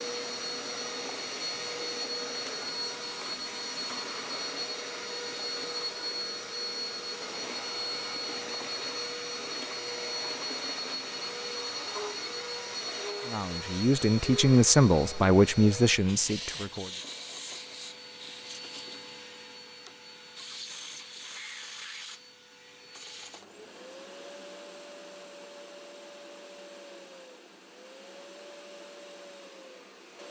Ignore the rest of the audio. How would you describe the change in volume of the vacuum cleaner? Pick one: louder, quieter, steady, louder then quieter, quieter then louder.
quieter.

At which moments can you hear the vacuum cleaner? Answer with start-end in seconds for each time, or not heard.
0.0-30.2.